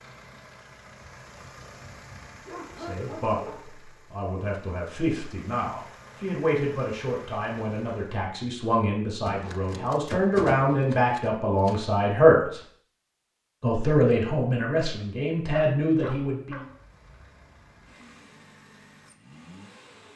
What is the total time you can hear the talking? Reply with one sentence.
The talking can be heard for 13 seconds in total.